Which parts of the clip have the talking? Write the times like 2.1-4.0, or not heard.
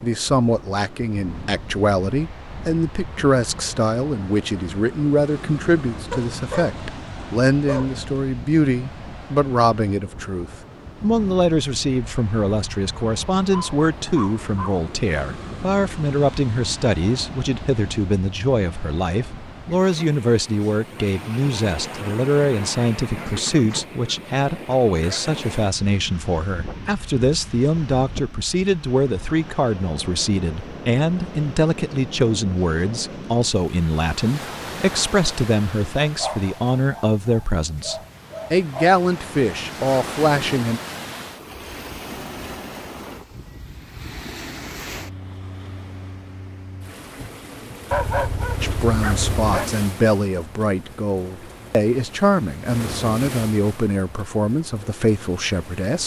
0.0-40.8, 48.6-56.0.